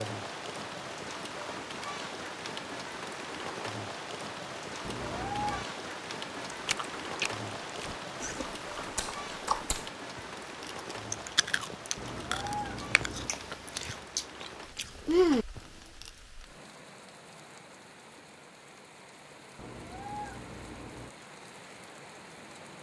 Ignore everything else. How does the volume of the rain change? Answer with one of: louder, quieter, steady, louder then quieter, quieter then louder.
quieter.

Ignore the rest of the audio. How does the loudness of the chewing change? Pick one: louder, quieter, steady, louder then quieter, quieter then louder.
louder.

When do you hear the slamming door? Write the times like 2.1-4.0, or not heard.
not heard.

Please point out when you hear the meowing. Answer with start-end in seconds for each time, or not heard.
4.8-5.7, 11.9-13.3, 19.6-21.1.